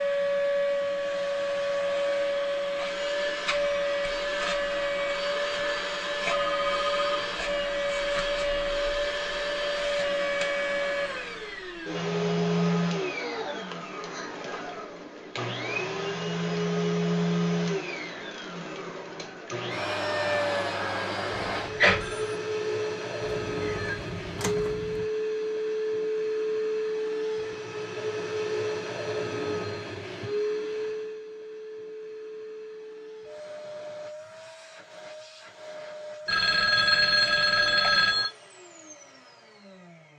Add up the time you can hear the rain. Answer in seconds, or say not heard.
not heard.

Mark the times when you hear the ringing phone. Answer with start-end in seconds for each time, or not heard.
6.2-7.3, 21.5-22.4, 36.2-38.2.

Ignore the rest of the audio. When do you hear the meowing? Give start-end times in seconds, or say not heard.
23.2-25.1.